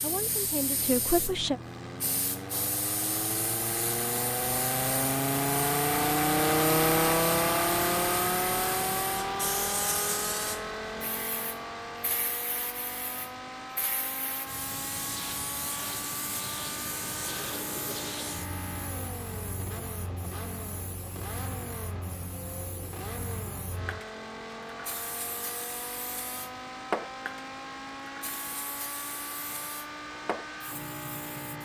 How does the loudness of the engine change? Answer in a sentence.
The volume of the engine goes down.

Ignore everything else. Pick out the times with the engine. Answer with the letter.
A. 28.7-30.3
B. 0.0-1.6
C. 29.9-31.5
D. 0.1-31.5
D.